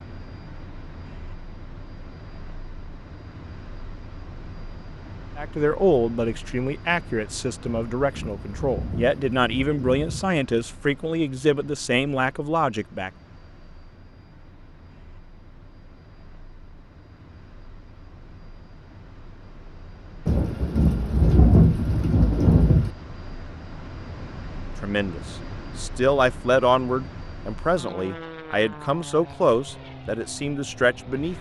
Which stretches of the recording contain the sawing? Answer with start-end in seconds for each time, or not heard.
not heard.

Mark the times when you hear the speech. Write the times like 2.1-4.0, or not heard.
5.3-13.1, 24.8-31.3.